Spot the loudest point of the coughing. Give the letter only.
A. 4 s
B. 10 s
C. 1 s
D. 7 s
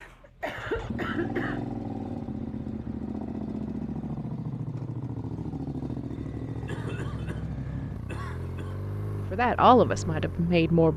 C.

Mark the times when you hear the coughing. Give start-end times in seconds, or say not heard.
0.2-1.6, 6.2-8.8.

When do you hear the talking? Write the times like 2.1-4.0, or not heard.
9.3-10.9.